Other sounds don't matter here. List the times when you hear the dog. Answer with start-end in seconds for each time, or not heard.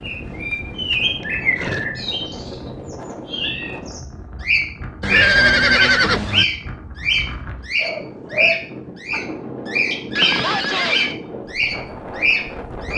7.8-9.2.